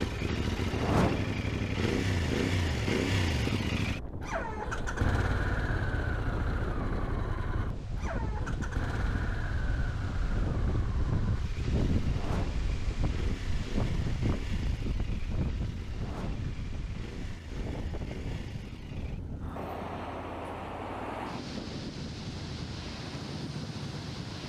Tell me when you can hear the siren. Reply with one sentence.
The siren can't be heard in this clip.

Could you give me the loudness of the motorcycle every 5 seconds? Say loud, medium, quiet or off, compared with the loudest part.
loud, medium, medium, quiet, quiet.